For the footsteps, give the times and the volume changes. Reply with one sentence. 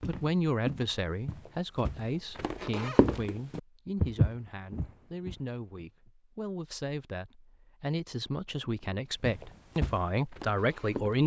You can hear the footsteps from 0.0 to 5.3 s, getting quieter then louder; and briefly from 8.6 to 11.2 s.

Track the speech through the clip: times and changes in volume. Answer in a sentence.
The speech can be heard from 0.1 to 11.2 s, getting quieter then louder.